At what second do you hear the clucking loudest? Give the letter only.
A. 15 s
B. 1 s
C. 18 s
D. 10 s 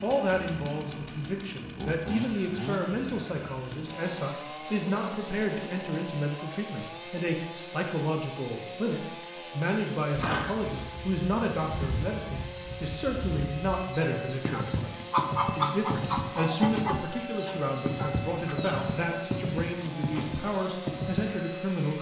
A.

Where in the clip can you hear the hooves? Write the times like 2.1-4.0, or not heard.
10.1-21.4.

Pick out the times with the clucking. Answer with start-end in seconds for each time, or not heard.
13.8-18.9.